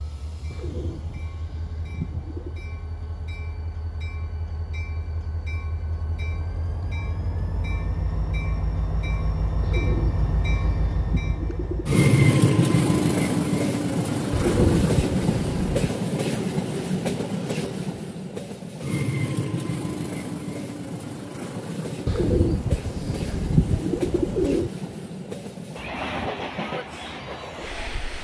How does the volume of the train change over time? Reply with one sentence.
The loudness of the train goes up, then down.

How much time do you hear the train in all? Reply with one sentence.
You can hear the train for 28 seconds altogether.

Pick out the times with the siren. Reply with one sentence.
The siren can't be heard in this clip.